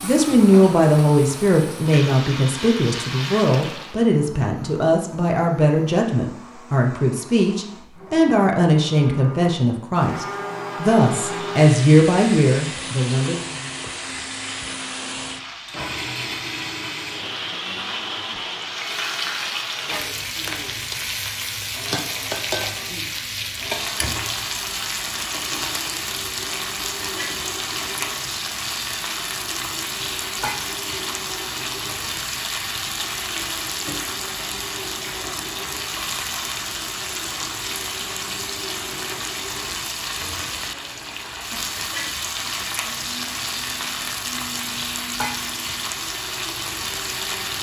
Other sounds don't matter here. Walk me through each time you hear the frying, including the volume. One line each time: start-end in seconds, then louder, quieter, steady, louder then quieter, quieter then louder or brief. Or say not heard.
0.0-4.0 louder
10.8-47.5 louder.